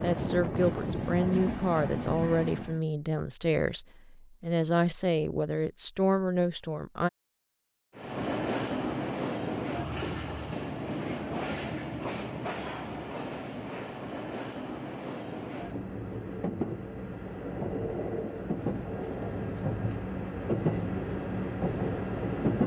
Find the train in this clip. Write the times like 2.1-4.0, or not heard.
0.0-2.8, 8.0-22.6.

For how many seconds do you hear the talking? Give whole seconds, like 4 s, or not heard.
7 s.